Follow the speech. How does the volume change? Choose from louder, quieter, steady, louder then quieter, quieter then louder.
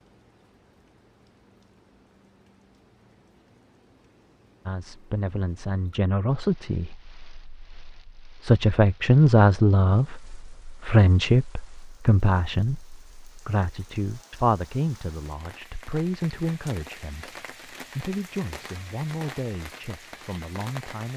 louder then quieter.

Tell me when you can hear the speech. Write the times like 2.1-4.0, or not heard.
4.7-21.1.